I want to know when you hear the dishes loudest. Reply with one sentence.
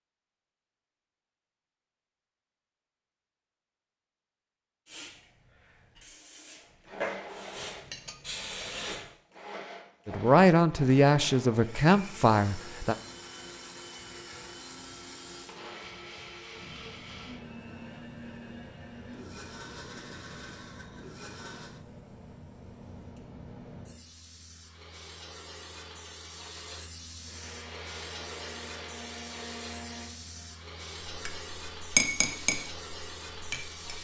The loudest moment of the dishes is at 32 seconds.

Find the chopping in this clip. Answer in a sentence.
You can't hear the chopping here.